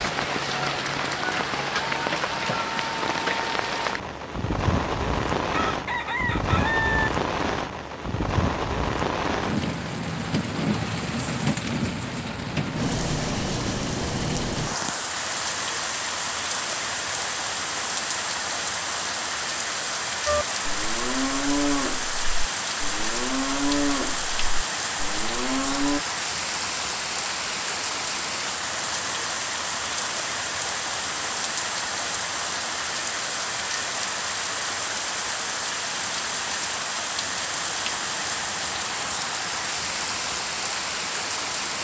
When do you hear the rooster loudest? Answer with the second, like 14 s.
7 s.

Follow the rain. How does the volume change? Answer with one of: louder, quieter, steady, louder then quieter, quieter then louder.
steady.